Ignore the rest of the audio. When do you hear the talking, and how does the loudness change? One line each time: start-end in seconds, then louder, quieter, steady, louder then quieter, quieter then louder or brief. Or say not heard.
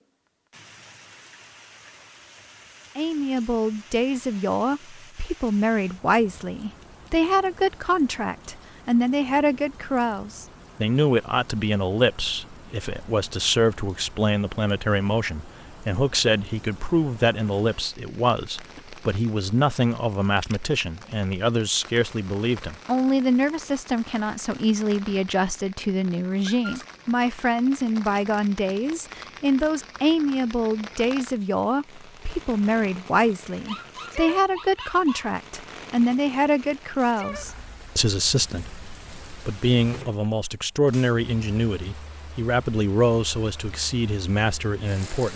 3.0-45.3 steady.